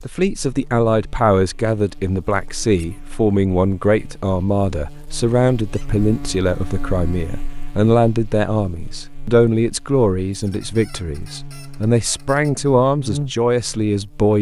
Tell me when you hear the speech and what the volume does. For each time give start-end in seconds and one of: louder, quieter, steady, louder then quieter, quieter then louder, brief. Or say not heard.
0.1-14.3 steady.